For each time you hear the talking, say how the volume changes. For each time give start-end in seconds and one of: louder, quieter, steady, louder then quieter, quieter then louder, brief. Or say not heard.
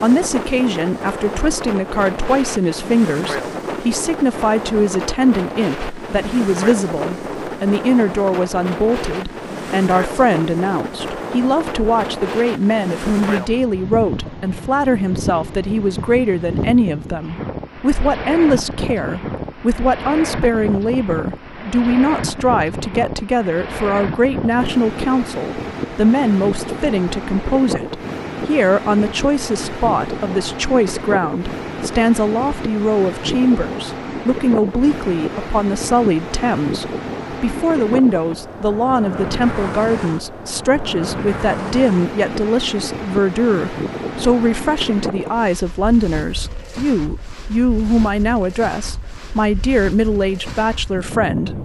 0.0-51.6 steady.